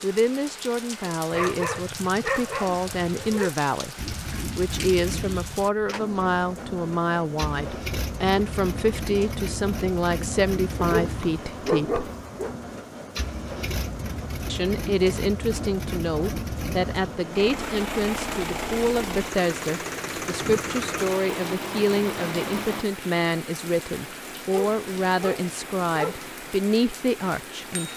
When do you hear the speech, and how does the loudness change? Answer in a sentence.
The speech can be heard from 0.0 to 12.1 s, at a steady volume; and from 14.4 to 27.9 s, at a steady volume.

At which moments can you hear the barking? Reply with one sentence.
The barking can be heard from 1.3 to 3.5 s, from 10.8 to 12.6 s and from 24.5 to 26.3 s.